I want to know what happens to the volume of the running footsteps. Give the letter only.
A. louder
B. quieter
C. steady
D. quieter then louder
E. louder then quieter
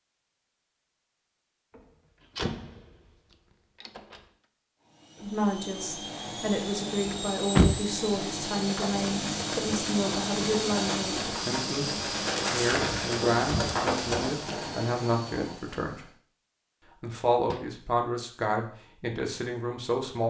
A.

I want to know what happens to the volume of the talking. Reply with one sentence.
The loudness of the talking stays about the same.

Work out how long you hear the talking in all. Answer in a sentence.
You can hear the talking for 14 seconds altogether.